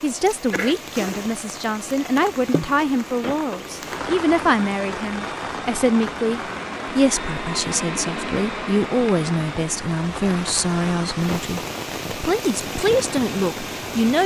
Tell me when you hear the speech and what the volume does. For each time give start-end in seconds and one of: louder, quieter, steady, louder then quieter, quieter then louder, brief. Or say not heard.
0.0-14.2 steady.